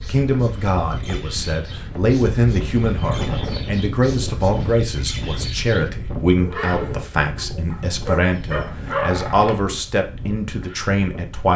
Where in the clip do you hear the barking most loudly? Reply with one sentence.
The volume of the barking peaks at 9 seconds.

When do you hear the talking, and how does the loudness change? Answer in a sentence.
The talking can be heard from 0.0 to 11.5 s, at a steady volume.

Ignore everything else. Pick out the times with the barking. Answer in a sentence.
You can hear the barking from 6.3 to 9.6 s.